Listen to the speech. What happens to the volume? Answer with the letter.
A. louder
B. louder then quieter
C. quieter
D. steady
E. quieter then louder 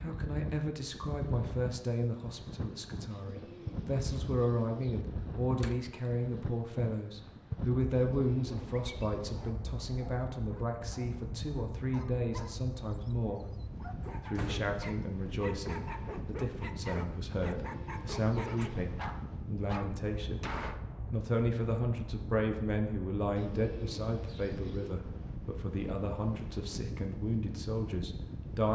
D.